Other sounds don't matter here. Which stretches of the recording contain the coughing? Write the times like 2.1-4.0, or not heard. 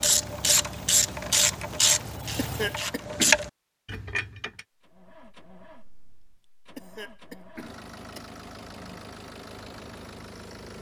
2.4-3.4, 6.8-8.2.